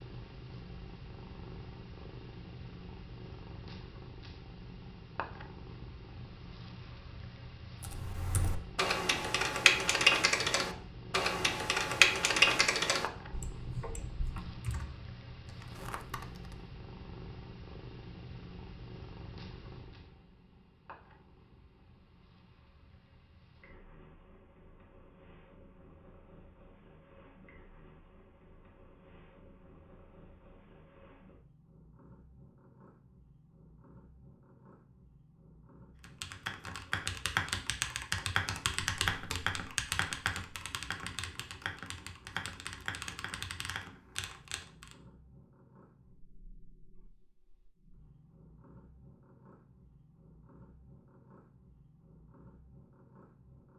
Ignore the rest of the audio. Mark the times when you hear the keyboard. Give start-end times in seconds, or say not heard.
7.8-16.6, 36.0-45.0.